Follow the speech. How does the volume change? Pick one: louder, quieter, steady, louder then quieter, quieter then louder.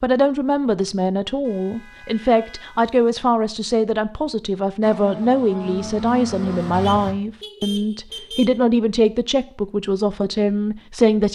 steady.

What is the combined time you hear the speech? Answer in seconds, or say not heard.
11 s.